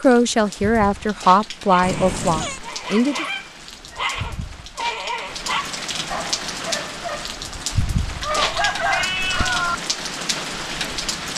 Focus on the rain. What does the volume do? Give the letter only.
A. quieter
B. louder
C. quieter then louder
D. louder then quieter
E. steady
B.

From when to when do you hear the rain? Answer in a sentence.
You can hear the rain from 0.0 to 11.3 s.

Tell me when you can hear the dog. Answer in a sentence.
The dog can be heard from 1.6 to 7.4 s.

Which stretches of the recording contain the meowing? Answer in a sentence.
You can hear the meowing from 1.8 to 2.6 s and from 8.3 to 9.6 s.